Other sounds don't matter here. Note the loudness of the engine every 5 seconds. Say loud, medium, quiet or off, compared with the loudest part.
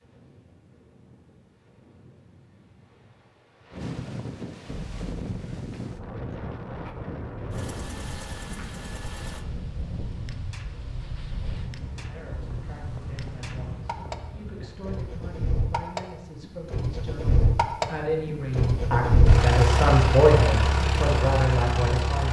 off, quiet, quiet, loud, loud.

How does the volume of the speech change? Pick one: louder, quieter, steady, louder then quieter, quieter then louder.
louder.